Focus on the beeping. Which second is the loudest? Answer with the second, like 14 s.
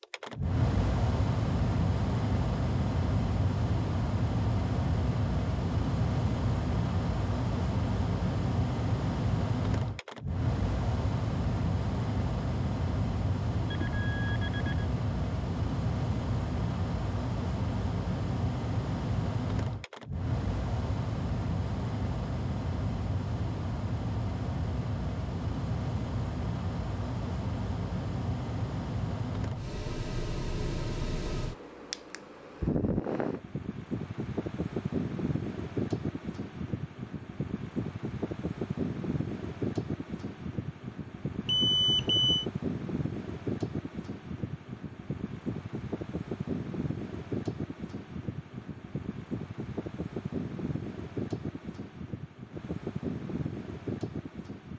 42 s.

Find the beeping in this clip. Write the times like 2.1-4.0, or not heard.
13.7-14.8, 41.5-42.5.